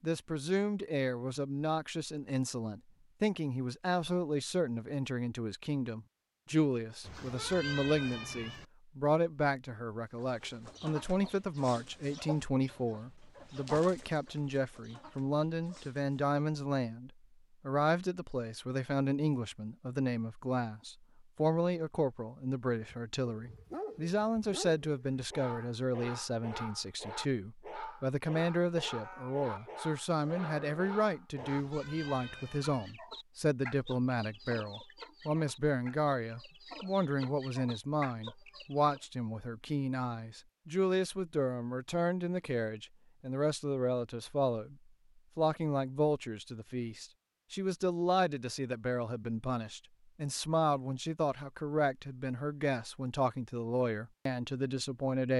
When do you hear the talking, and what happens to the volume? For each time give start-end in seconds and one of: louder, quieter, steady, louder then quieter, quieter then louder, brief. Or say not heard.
0.0-44.8 steady
45.4-55.3 steady.